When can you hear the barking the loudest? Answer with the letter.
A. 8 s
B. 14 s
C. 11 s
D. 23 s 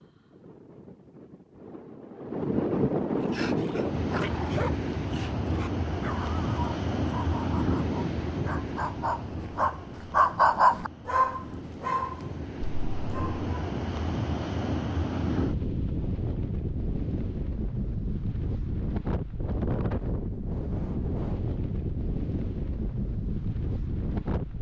C.